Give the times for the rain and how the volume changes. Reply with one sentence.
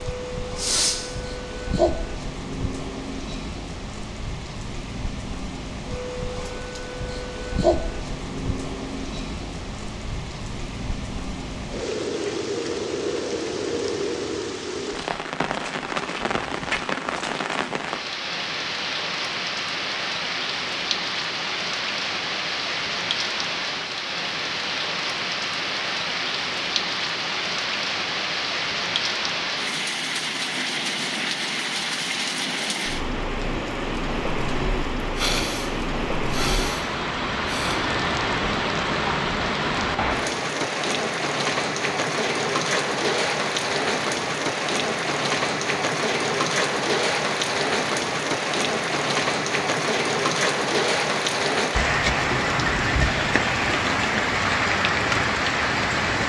The rain can be heard from 0.0 to 56.2 s, getting louder.